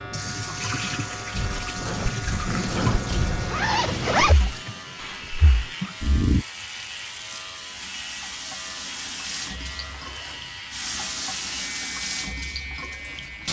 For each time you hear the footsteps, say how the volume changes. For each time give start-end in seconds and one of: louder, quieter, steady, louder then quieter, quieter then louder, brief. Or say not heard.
not heard.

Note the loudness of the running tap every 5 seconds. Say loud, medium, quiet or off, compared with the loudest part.
loud, medium, loud.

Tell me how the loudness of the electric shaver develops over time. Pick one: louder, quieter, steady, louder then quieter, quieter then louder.
steady.